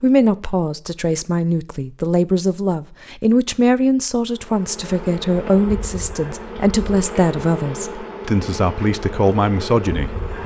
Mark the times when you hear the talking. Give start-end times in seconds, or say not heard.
0.0-10.4.